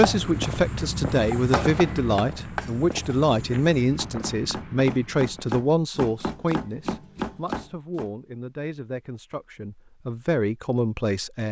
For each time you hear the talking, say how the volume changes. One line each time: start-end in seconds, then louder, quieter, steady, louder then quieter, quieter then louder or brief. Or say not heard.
0.0-11.4 quieter then louder.